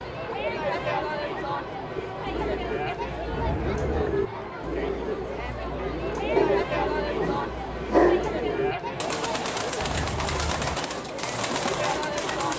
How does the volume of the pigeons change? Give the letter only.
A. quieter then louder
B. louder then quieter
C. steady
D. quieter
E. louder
C.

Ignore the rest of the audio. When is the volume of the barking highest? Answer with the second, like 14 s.
8 s.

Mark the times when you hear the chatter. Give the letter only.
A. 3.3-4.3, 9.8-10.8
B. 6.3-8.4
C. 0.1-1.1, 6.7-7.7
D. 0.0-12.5
D.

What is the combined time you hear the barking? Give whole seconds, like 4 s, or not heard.
2 s.